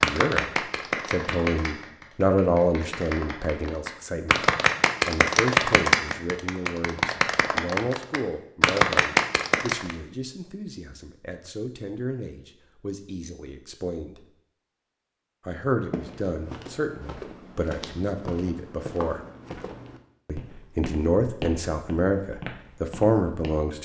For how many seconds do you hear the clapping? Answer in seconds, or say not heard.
10 s.